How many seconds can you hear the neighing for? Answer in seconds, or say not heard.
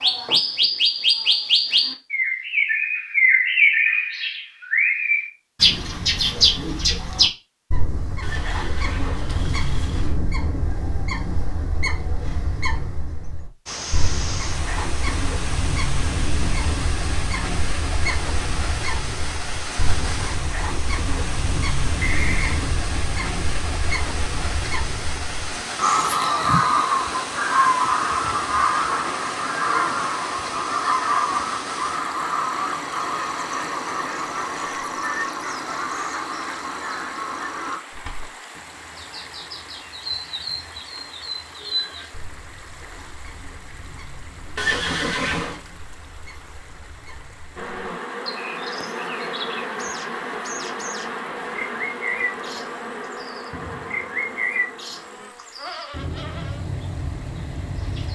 4 s.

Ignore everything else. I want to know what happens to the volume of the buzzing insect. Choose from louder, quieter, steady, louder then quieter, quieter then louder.
quieter.